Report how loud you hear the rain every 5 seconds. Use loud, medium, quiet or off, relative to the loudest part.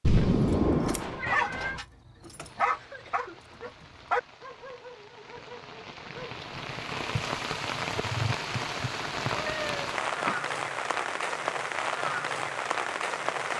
quiet, loud, loud.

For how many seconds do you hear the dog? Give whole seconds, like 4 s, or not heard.
6 s.